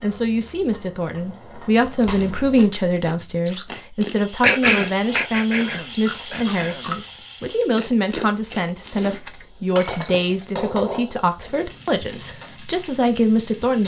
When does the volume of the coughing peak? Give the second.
5 s.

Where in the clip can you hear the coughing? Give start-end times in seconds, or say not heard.
4.4-6.8.